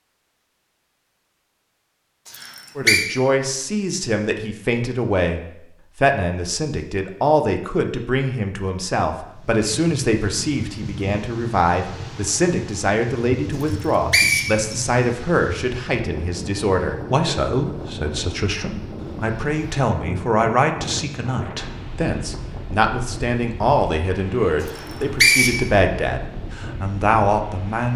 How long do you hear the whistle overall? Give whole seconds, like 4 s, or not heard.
3 s.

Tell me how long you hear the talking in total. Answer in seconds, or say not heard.
25 s.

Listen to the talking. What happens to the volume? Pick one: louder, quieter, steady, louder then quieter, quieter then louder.
steady.